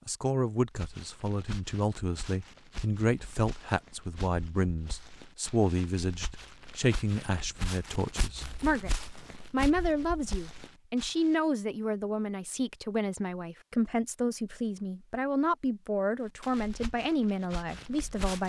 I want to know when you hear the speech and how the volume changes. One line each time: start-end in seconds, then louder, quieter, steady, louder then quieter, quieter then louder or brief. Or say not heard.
0.1-18.4 steady.